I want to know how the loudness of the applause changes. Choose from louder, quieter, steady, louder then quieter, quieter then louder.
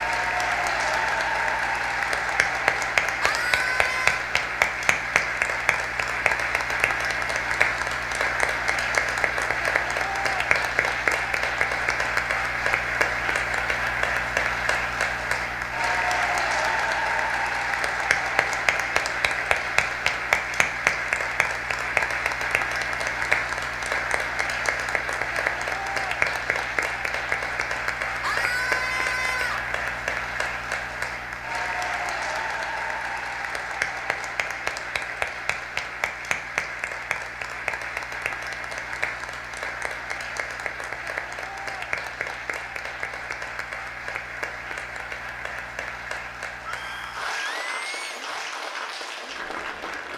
quieter.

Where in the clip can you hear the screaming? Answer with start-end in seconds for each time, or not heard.
3.2-4.2, 28.2-29.7, 46.6-48.2.